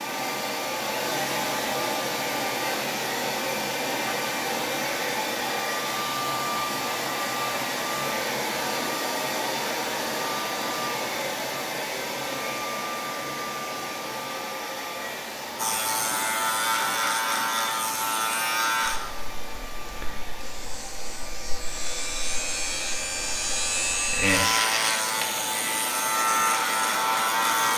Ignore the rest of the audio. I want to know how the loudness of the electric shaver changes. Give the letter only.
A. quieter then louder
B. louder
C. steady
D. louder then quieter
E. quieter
A.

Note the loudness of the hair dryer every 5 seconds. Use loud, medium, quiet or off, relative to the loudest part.
loud, loud, loud, medium, medium, medium.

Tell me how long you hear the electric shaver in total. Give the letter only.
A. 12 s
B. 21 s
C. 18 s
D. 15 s
A.